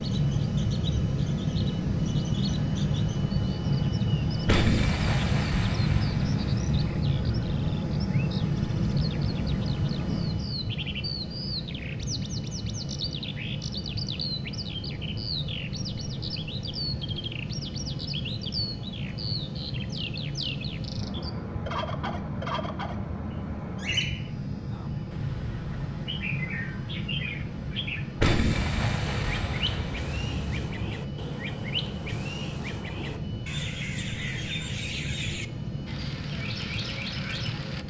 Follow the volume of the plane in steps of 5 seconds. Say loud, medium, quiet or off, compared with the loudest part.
loud, loud, medium, medium, medium, medium, medium, medium.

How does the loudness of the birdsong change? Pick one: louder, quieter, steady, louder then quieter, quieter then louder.
louder.